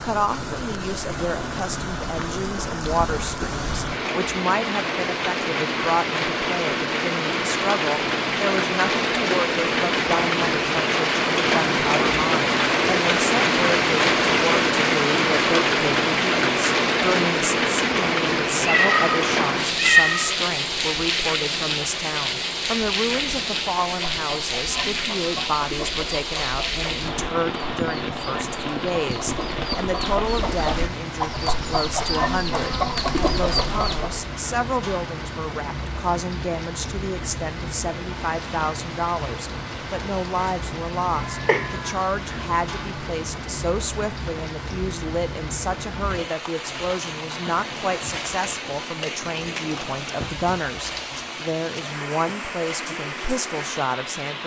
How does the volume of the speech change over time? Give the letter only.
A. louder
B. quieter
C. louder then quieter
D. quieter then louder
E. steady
E.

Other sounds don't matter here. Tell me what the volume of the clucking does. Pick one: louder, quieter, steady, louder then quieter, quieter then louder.
louder.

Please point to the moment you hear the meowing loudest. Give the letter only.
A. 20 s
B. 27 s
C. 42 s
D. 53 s
A.